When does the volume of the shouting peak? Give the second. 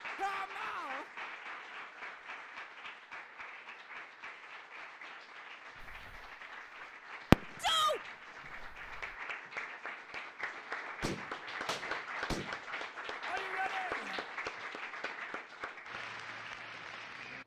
8 s.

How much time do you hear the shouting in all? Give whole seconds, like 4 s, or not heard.
2 s.